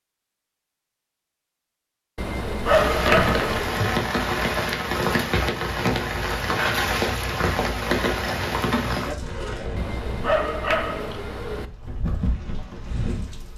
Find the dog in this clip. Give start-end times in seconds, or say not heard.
2.1-3.8, 9.8-11.7.